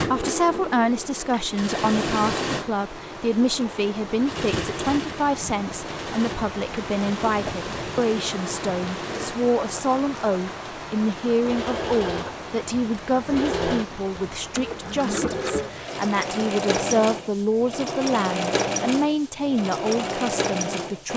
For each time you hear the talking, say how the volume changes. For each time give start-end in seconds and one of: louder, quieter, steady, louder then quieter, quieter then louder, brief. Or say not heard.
0.0-21.1 steady.